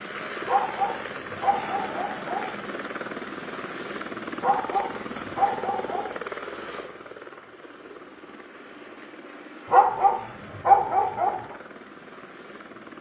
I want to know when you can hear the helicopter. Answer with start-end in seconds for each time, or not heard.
0.0-12.9.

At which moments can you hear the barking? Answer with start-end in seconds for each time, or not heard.
0.5-2.5, 4.4-6.0, 9.7-11.6.